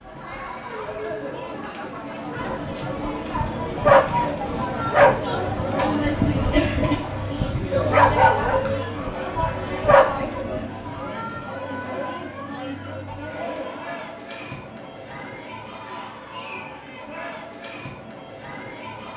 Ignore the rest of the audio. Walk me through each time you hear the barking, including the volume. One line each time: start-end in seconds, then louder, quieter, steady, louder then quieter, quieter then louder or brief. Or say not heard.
2.4-10.7 quieter then louder.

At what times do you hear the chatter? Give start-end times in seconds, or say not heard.
0.0-19.1.